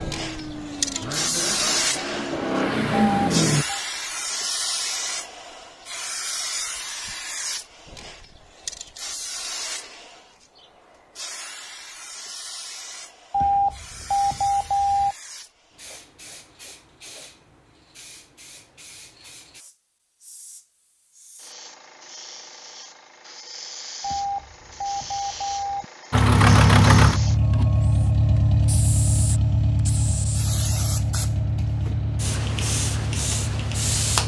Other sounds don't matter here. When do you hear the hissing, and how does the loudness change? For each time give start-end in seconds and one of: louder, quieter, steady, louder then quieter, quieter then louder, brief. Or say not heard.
0.0-34.2 quieter then louder.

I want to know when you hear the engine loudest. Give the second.
27 s.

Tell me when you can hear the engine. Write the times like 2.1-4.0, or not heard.
0.0-3.6, 26.1-34.2.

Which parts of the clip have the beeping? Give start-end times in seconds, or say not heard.
2.9-3.8, 13.3-15.2, 24.0-25.9.